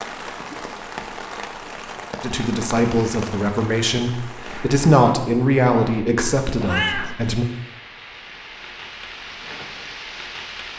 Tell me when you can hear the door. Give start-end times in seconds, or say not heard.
not heard.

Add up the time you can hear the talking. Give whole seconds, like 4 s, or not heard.
5 s.